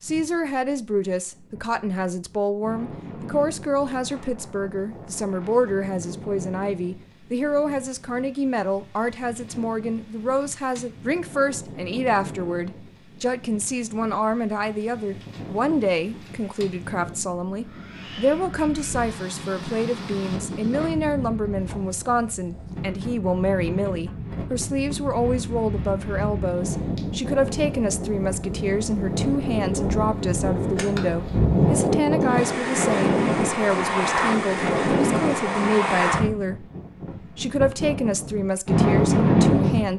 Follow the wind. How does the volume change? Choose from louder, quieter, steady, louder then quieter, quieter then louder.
louder.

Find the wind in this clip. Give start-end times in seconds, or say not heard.
0.0-39.9.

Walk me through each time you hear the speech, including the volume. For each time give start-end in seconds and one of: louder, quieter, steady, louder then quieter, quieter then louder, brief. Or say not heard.
0.0-36.6 steady
37.4-39.9 brief.